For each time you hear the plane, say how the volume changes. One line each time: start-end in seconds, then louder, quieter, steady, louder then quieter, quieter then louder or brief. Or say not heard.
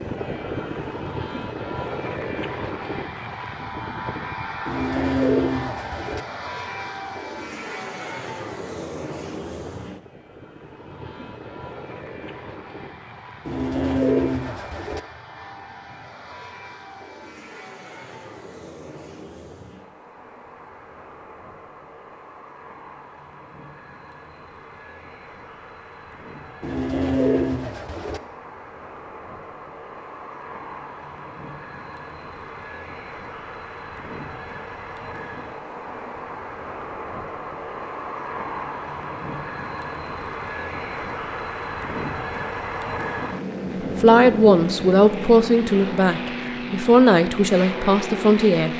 0.0-48.7 quieter then louder.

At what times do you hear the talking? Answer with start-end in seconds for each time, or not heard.
44.0-48.7.